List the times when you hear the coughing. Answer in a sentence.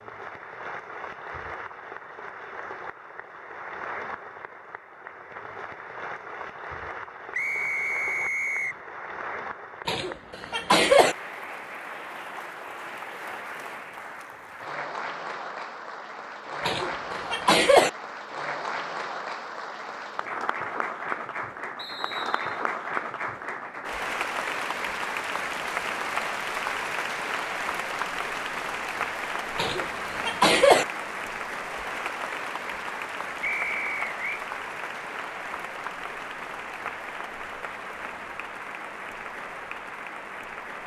You can hear the coughing from 9.8 to 11.2 s, from 16.6 to 17.9 s and from 29.6 to 30.9 s.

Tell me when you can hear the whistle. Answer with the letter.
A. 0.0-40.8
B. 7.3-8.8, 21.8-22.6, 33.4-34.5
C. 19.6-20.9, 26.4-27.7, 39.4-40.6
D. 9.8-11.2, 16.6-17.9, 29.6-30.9
B.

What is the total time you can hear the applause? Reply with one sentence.
You can hear the applause for 41 seconds altogether.